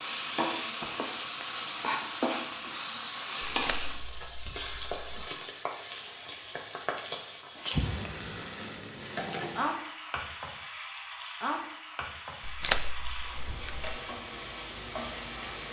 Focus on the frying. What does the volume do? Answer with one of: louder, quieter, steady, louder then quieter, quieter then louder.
quieter.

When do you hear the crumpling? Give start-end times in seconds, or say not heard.
3.4-5.2, 12.4-14.0.